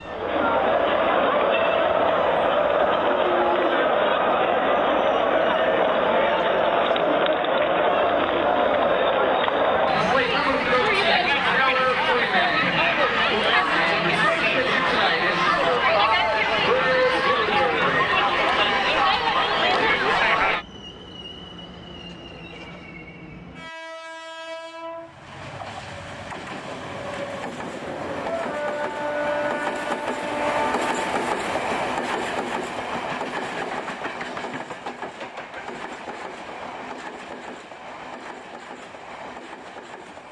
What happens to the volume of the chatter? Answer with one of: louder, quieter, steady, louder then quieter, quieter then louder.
steady.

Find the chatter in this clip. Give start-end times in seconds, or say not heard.
0.0-20.6.